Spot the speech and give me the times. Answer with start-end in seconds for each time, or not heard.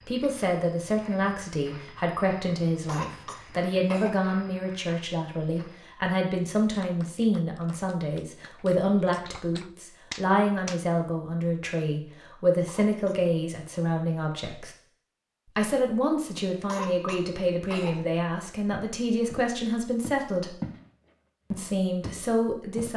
0.1-14.8, 15.6-20.6, 21.5-22.9.